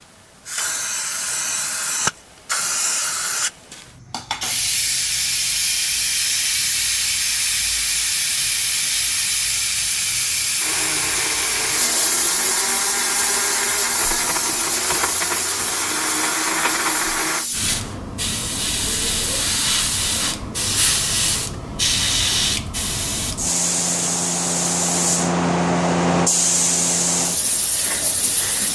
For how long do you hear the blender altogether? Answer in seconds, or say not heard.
7 s.